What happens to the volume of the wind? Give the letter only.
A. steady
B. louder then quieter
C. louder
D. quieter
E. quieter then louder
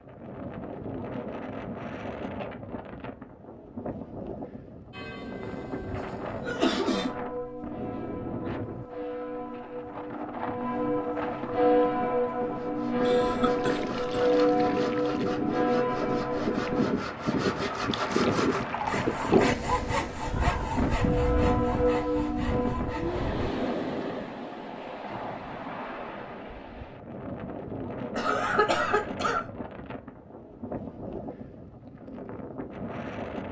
B.